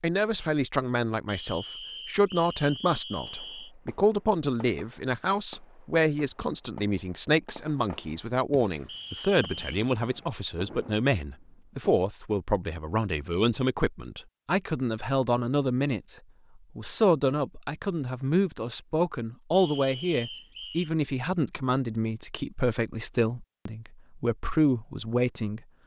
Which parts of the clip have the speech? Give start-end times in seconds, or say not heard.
0.0-16.1, 16.8-25.6.